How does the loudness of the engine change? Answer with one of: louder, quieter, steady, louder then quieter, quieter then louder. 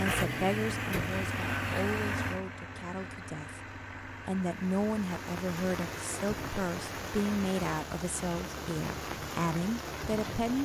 quieter.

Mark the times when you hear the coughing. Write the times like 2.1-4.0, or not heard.
not heard.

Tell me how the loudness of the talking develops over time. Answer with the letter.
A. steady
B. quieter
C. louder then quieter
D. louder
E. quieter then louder
E.